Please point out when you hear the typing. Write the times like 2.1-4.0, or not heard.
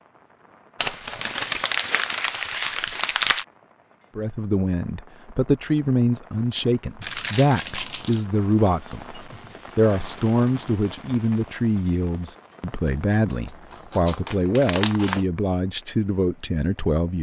not heard.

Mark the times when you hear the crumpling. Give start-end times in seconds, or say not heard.
0.8-3.5, 7.0-8.2, 13.3-15.2.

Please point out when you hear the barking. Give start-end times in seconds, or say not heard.
not heard.